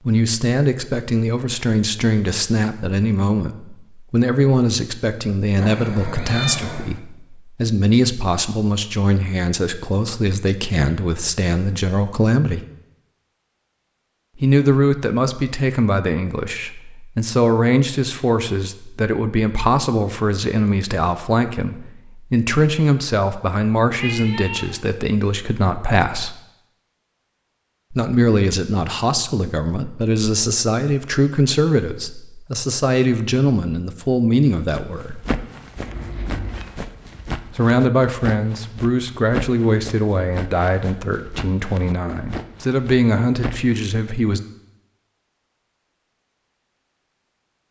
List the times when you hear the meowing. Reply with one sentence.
The meowing can be heard from 5.5 to 7.0 s, from 23.9 to 24.9 s and from 35.8 to 36.6 s.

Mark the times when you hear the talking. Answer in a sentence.
The talking can be heard from 0.1 to 12.7 s, from 14.3 to 26.4 s, from 27.9 to 35.2 s and from 37.5 to 44.4 s.